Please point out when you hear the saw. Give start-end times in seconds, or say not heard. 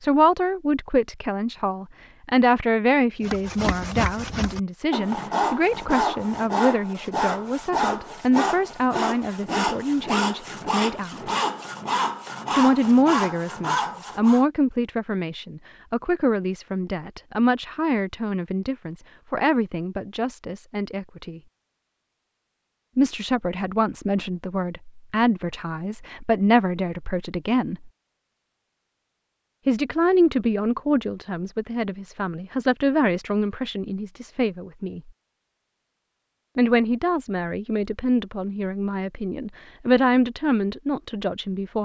3.2-14.4.